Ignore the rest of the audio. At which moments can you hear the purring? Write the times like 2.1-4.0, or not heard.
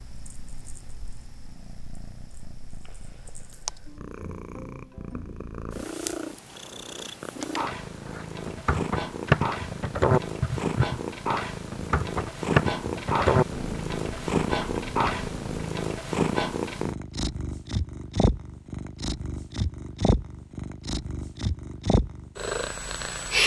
0.0-23.4.